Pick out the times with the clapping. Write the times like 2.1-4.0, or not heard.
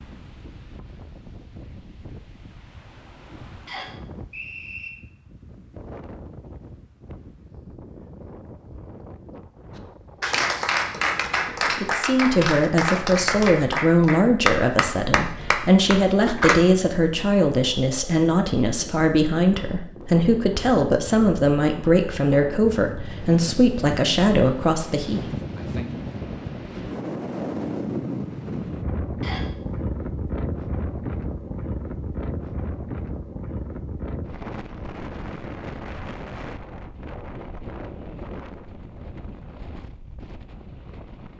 10.2-16.6.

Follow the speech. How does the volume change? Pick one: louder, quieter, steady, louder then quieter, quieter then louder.
steady.